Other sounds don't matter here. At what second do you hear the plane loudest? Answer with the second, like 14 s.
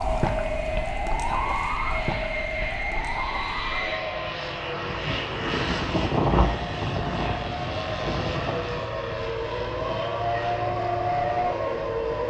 6 s.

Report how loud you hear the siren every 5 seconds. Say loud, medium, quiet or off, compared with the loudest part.
loud, medium, loud.